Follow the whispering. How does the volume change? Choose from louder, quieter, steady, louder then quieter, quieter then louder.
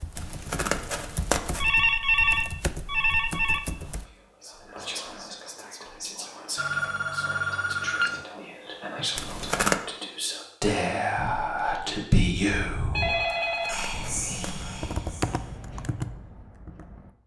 louder then quieter.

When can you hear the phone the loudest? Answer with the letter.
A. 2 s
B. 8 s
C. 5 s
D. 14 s
A.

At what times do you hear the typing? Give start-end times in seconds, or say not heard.
0.0-4.0, 13.9-17.1.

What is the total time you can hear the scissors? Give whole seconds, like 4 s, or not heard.
3 s.